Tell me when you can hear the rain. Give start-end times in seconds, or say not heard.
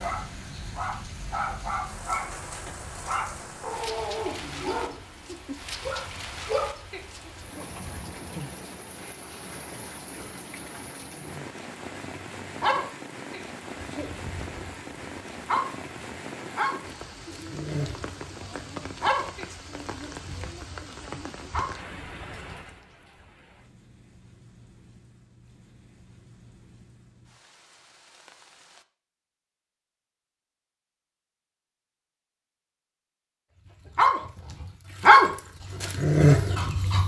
0.0-28.9.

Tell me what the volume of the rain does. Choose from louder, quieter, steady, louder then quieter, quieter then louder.
quieter.